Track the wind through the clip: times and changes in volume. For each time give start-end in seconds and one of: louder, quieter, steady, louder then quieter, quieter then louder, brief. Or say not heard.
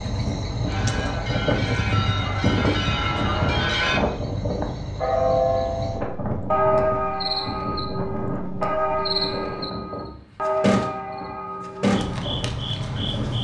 0.0-13.4 quieter.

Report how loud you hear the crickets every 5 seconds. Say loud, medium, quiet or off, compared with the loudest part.
medium, medium, loud.